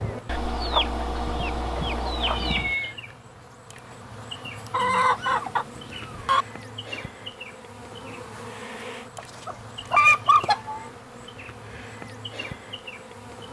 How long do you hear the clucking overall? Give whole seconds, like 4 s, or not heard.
6 s.